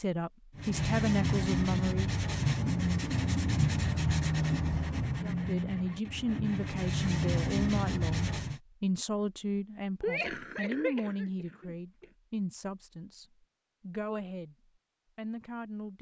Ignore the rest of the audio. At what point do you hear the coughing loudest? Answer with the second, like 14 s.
10 s.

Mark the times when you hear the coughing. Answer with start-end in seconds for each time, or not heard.
10.0-12.1.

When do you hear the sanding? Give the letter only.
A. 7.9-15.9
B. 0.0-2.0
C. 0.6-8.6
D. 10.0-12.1
C.